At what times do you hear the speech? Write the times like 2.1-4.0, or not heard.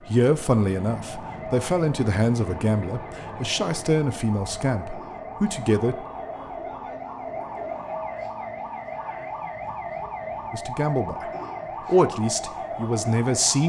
0.1-6.0, 10.5-11.2, 11.8-13.6.